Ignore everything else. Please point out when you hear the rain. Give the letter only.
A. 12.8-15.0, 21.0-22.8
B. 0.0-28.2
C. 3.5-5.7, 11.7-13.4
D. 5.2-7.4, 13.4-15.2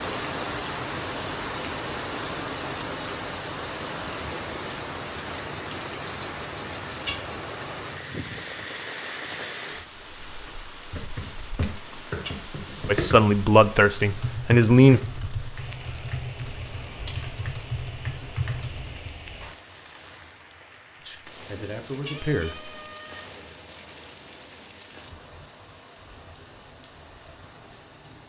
B.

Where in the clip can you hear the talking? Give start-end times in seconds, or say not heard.
12.8-15.0, 21.0-22.8.